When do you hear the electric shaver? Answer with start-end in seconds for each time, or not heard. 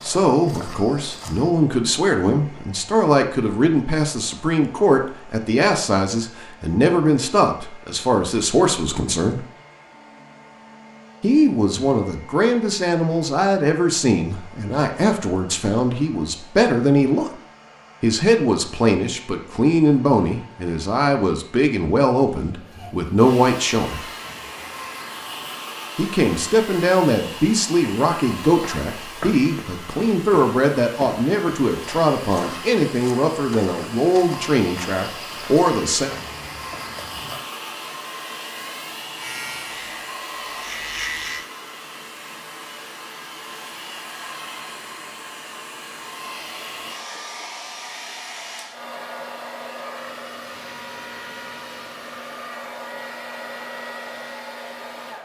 39.1-41.5.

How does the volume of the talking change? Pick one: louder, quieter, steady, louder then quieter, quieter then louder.
steady.